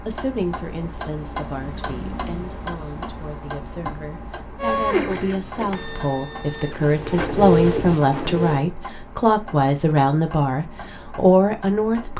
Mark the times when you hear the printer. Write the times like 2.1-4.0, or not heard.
4.5-8.7.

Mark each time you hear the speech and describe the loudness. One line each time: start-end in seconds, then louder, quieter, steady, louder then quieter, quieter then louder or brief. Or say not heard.
0.1-12.1 louder.